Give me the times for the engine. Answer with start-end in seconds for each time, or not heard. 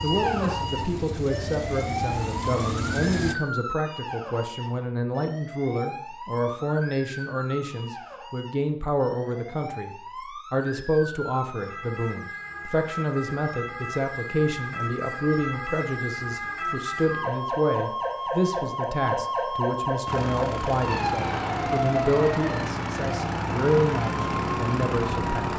0.0-3.4, 20.1-25.5.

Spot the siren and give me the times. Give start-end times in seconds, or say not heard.
0.0-25.5.